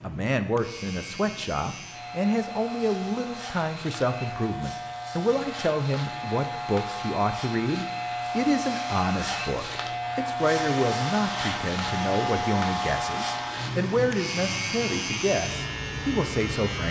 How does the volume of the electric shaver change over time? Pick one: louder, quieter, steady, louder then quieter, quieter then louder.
louder.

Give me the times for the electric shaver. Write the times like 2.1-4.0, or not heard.
0.0-16.8.